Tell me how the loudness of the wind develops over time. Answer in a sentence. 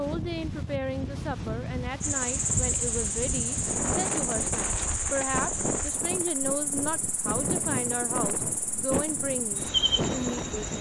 The volume of the wind stays about the same.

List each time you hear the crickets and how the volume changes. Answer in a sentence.
The crickets can be heard from 2.0 to 10.7 s, getting quieter then louder.